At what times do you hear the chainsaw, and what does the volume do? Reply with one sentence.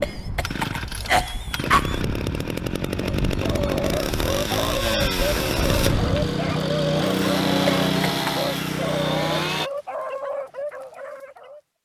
You can hear the chainsaw from 0.0 to 9.7 s, getting louder.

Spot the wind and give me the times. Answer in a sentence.
You can hear the wind from 0.0 to 6.2 s.